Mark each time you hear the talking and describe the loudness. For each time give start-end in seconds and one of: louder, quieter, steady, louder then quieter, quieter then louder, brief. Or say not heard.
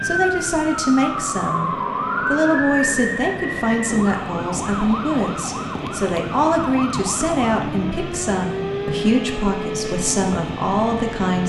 0.0-11.4 steady.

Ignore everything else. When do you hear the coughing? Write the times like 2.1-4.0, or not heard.
not heard.